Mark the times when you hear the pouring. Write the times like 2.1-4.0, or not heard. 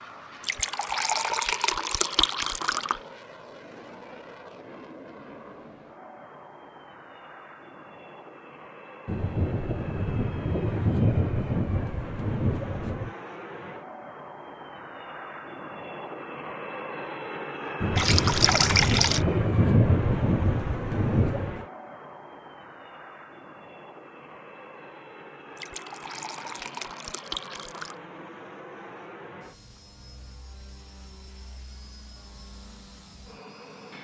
0.4-3.0, 17.9-19.2, 25.6-27.9.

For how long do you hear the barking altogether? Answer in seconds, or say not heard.
not heard.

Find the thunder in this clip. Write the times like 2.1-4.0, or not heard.
9.1-13.1, 17.8-21.6.